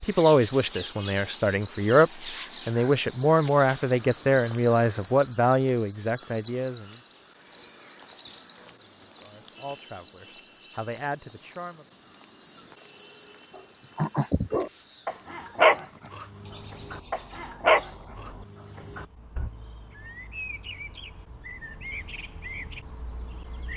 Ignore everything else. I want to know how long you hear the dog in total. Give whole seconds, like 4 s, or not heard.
6 s.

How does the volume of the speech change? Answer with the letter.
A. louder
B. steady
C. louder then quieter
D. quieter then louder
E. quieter
E.